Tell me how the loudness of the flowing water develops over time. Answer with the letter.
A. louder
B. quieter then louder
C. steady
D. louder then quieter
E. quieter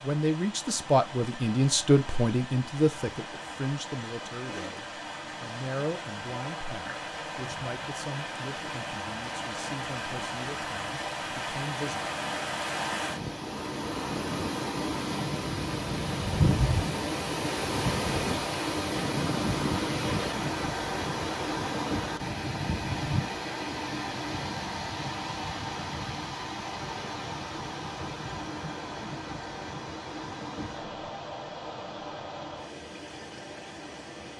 D.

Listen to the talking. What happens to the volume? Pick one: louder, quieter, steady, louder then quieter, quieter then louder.
quieter.